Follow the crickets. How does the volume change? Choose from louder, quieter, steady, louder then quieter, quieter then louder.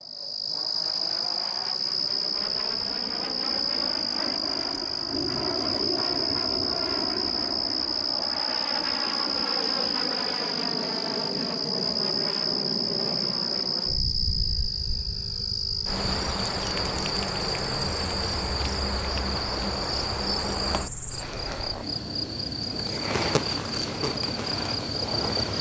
steady.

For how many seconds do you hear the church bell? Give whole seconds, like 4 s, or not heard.
not heard.